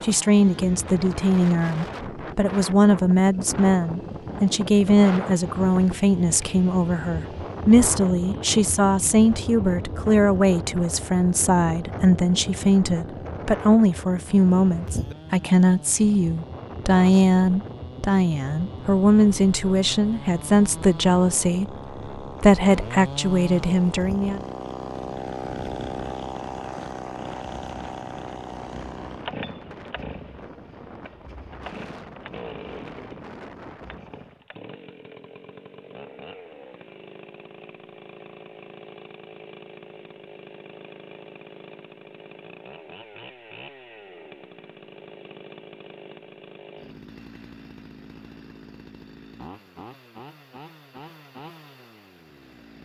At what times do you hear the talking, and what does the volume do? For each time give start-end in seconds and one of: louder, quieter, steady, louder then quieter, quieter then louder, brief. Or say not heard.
0.0-24.4 steady.